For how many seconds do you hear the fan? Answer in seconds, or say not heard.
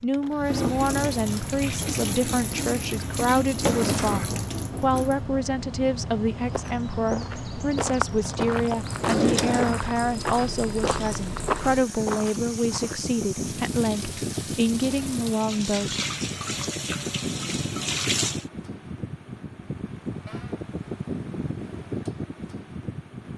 23 s.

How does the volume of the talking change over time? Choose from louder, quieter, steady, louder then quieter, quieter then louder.
steady.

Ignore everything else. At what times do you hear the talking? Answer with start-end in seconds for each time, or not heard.
0.0-15.9.